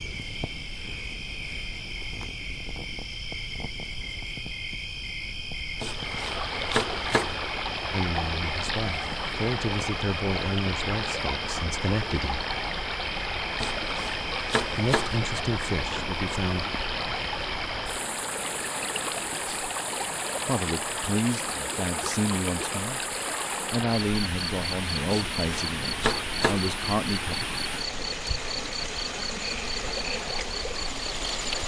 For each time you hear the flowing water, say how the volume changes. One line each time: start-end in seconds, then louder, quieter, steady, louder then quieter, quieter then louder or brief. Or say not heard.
5.8-31.6 steady.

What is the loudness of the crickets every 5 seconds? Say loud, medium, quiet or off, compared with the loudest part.
loud, loud, loud, loud, medium, loud, loud.